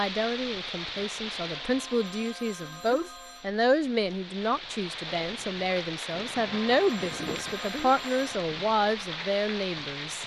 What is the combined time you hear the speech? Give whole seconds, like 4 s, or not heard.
10 s.